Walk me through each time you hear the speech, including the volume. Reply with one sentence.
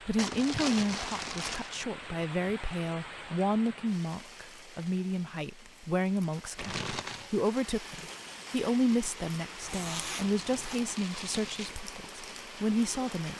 The speech can be heard from 0.1 to 13.3 s, at a steady volume.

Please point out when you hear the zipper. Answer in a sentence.
The zipper can be heard from 9.6 to 10.8 s.